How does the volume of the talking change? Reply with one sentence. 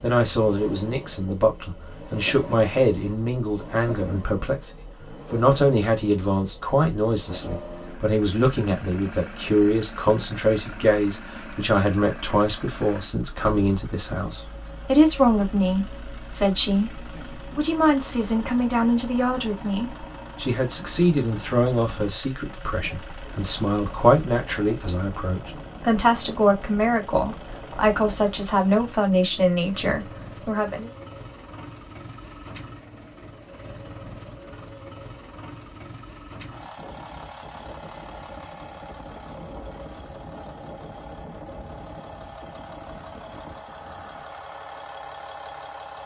The volume of the talking stays about the same.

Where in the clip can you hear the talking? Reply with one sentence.
You can hear the talking from 0.0 to 4.7 s and from 5.3 to 30.9 s.